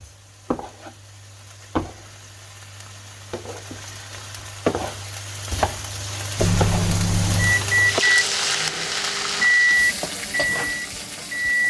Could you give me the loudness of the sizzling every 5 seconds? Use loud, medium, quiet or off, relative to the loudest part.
medium, loud, medium.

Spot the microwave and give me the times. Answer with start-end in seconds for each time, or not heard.
6.3-11.6.